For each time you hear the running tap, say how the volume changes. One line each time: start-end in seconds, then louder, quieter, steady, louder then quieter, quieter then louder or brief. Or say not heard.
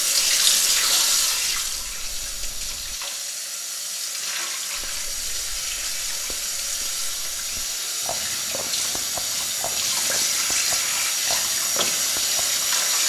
0.0-13.0 quieter then louder.